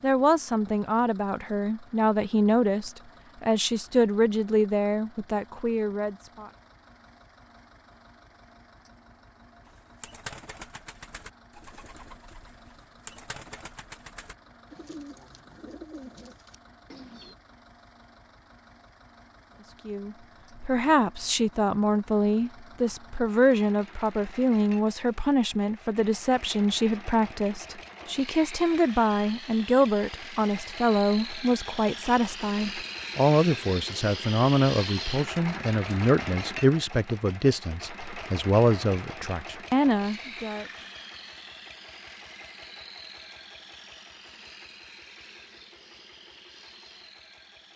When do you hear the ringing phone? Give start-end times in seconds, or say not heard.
not heard.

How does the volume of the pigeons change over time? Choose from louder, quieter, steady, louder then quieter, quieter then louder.
quieter then louder.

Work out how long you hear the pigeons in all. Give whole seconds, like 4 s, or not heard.
8 s.